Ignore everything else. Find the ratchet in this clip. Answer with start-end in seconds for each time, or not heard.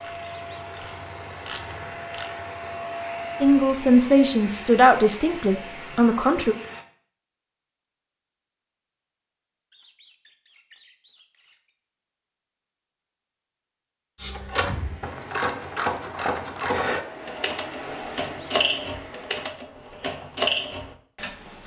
0.0-2.3, 14.2-21.6.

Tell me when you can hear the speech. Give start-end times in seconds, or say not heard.
3.4-6.5.